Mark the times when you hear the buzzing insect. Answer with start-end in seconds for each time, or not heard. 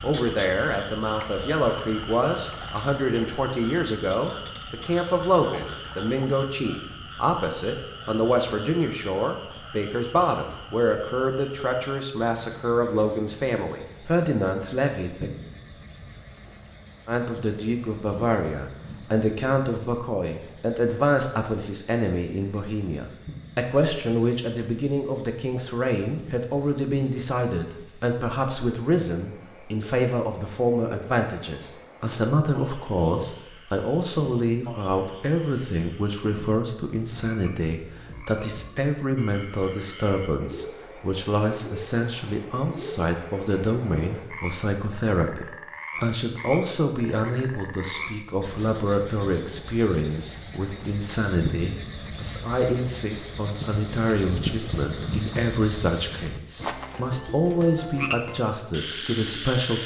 not heard.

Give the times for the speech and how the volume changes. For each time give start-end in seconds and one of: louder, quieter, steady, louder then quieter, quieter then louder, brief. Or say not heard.
0.0-15.3 steady
17.1-59.8 steady.